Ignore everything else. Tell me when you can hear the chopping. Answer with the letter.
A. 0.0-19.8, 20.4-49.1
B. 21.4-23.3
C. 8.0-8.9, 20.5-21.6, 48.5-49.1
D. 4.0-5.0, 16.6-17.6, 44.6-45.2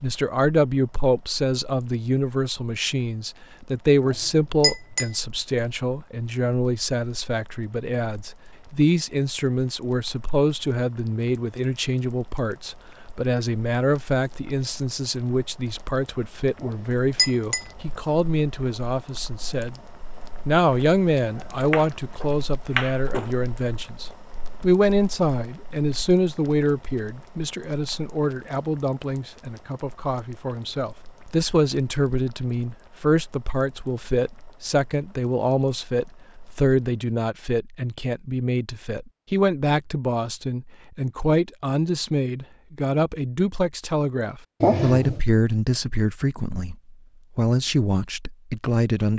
B.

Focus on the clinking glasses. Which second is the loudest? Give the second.
45 s.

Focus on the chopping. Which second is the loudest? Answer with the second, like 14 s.
23 s.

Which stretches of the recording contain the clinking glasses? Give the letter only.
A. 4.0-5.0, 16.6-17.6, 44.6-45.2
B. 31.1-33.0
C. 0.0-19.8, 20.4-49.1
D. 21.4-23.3
A.